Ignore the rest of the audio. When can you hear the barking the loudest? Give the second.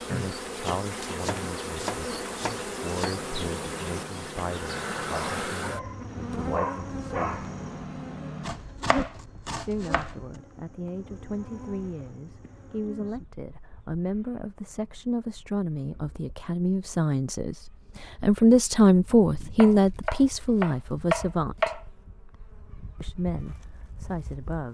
7 s.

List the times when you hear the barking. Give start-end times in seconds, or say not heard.
3.1-8.7.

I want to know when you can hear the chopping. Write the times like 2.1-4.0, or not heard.
0.7-3.1, 8.4-10.2, 19.6-21.9.